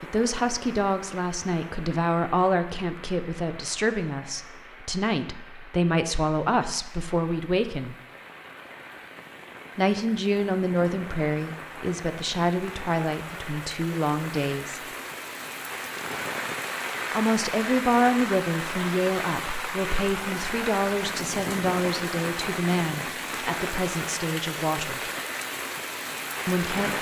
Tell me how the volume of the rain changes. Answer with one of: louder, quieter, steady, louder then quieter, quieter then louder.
louder.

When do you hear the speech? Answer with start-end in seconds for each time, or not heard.
0.0-8.0, 9.8-14.8, 17.1-25.0, 26.4-26.9.